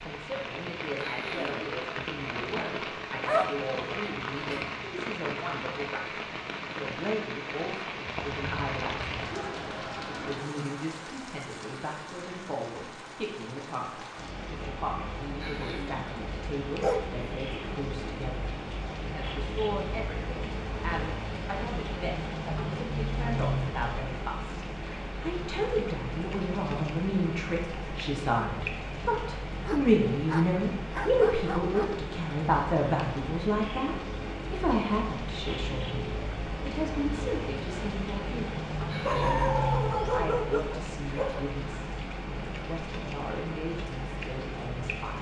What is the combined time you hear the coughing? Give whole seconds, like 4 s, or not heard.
2 s.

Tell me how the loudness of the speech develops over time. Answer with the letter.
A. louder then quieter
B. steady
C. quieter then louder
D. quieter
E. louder
A.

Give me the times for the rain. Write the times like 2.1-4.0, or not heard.
0.0-45.1.